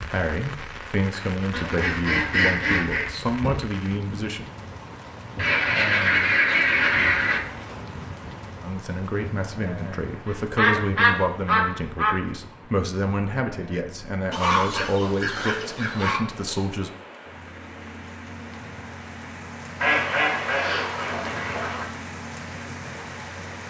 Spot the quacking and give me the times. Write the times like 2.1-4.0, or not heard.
1.5-3.0, 5.3-7.4, 10.2-12.2, 14.3-16.2, 19.8-21.9.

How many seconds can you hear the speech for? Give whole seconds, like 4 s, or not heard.
13 s.